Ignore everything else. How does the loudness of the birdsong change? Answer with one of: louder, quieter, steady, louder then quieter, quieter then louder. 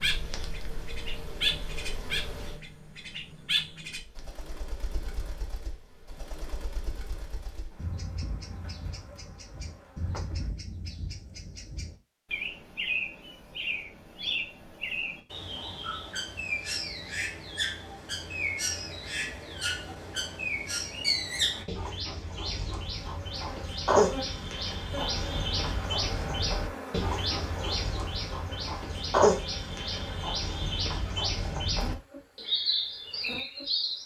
louder.